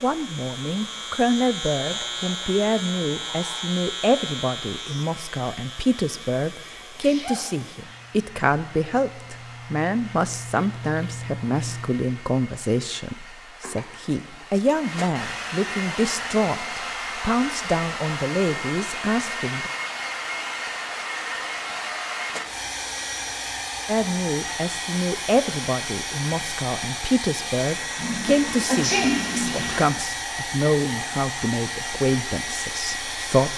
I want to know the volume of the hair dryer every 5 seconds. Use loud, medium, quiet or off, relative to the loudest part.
quiet, quiet, quiet, loud, loud, loud, loud.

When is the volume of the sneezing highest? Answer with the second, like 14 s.
29 s.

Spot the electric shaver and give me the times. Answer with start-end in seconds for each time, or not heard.
0.0-12.0.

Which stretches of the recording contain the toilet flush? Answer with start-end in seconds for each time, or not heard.
27.9-29.9.